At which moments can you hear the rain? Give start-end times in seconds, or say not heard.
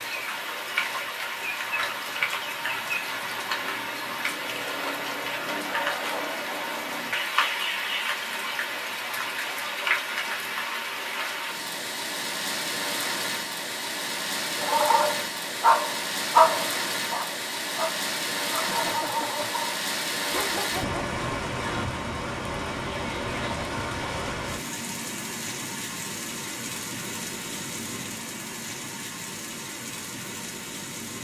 0.0-31.1.